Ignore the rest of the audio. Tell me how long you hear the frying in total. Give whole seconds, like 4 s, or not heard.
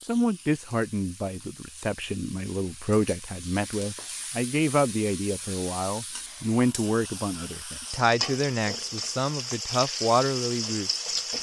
11 s.